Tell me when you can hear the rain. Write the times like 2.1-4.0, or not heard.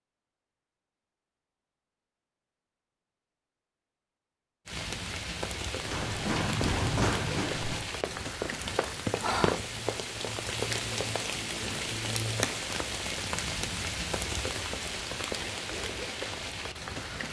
4.7-17.2.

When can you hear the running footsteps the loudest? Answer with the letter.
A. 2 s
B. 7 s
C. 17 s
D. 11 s
B.